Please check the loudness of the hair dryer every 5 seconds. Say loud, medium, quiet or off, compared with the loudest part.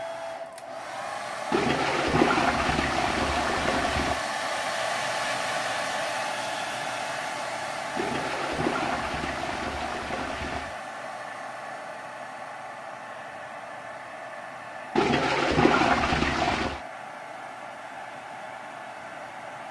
loud, loud, medium, medium.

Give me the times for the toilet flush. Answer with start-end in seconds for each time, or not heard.
1.5-4.2, 8.0-10.8, 14.9-16.8.